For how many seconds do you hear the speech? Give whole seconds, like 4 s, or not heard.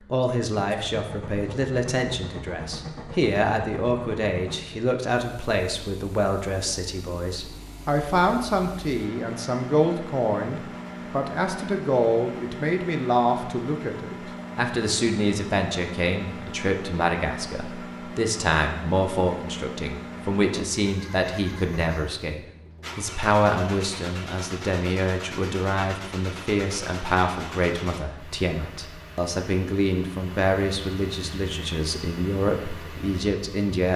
34 s.